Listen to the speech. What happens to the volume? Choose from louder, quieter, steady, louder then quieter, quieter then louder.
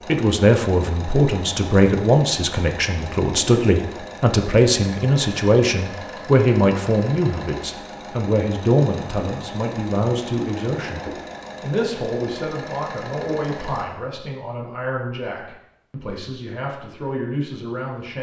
quieter.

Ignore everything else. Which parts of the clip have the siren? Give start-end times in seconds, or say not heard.
not heard.